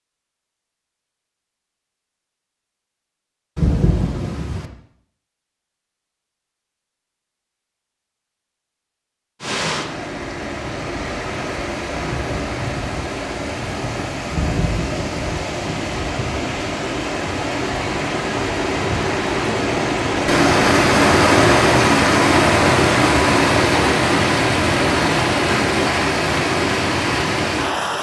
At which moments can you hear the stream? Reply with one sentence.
You can hear the stream from 9.4 to 27.9 s.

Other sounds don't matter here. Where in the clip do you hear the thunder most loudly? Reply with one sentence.
The loudest moment of the thunder is at 4 seconds.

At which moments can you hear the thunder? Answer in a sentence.
You can hear the thunder from 3.5 to 4.7 s and from 14.3 to 15.2 s.